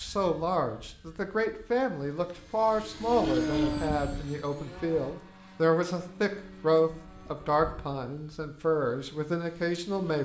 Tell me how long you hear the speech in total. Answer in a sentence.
The speech can be heard for 10 seconds in total.